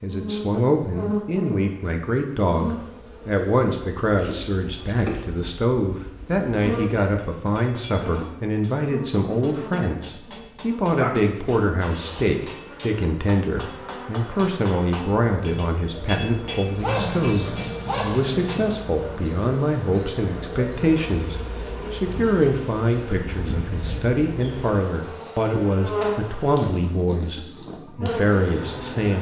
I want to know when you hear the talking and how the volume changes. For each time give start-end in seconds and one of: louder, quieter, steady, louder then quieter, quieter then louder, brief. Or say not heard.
0.0-29.1 steady.